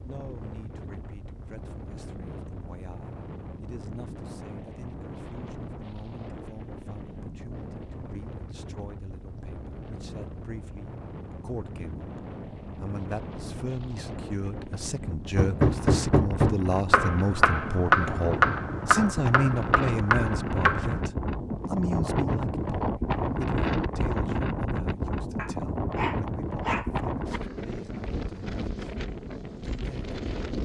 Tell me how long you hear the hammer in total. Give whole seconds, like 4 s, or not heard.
6 s.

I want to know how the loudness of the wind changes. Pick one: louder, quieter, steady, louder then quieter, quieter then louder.
louder.